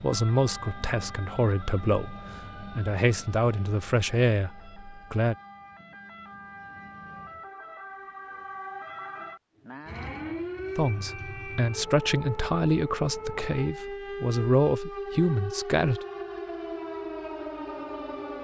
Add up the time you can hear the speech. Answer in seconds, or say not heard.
11 s.